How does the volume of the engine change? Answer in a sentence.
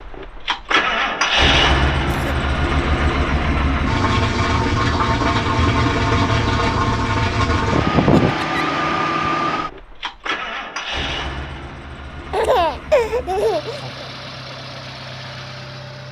The loudness of the engine goes down.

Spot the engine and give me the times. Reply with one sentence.
The engine can be heard from 0.0 to 16.0 s.